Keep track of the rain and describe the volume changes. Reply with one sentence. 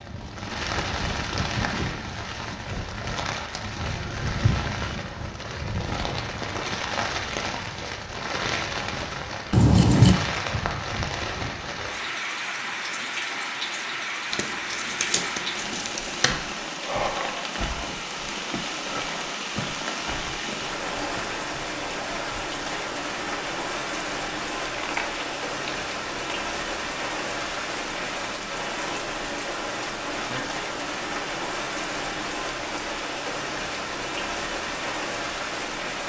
The volume of the rain stays about the same.